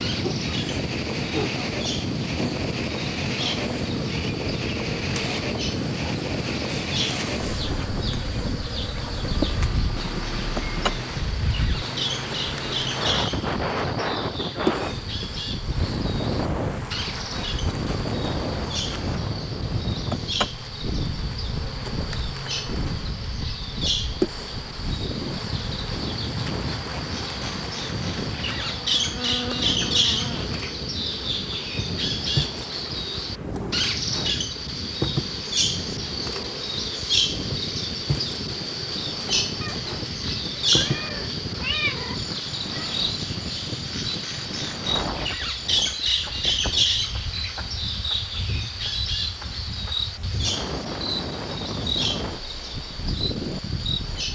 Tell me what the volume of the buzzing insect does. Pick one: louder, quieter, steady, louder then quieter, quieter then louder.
steady.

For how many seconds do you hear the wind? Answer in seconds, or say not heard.
54 s.